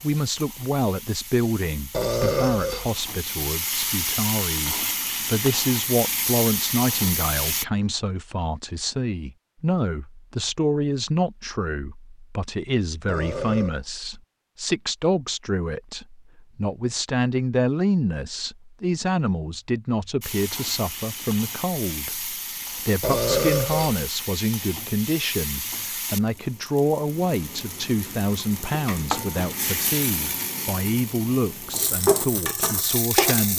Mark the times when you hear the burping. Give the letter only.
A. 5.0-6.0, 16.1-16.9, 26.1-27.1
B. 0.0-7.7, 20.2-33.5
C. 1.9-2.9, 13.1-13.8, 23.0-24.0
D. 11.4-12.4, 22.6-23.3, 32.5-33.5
C.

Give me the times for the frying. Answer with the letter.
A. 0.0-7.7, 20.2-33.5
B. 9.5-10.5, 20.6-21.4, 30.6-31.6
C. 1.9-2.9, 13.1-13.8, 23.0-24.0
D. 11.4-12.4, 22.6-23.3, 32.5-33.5
A.